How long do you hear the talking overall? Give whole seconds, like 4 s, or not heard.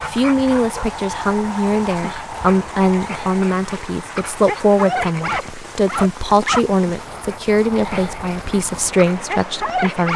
10 s.